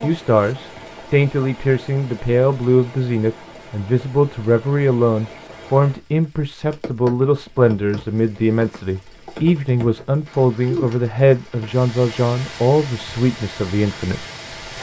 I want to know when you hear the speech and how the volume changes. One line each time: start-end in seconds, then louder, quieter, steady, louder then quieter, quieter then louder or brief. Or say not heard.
0.0-14.7 steady.